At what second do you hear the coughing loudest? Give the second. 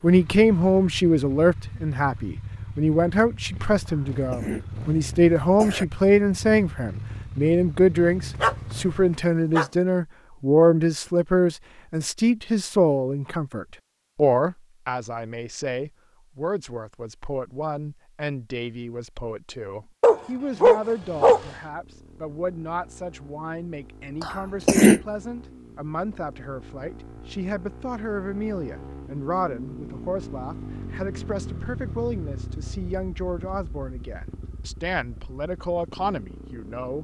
25 s.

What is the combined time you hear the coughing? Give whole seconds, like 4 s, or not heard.
3 s.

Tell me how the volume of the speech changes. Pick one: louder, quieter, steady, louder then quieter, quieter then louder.
quieter.